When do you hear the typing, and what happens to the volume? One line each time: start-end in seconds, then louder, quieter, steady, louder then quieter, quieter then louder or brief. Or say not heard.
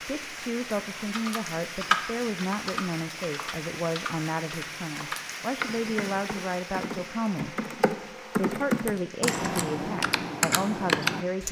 0.9-11.4 quieter then louder.